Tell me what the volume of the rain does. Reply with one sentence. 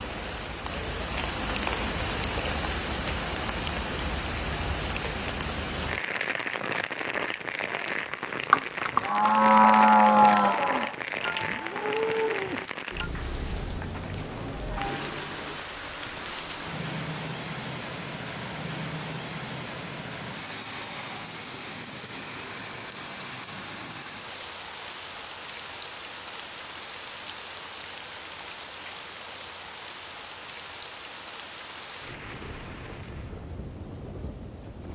The loudness of the rain goes down.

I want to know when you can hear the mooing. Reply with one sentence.
You can hear the mooing from 8.3 to 13.1 s.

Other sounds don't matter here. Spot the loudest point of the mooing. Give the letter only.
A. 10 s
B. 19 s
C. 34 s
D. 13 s
A.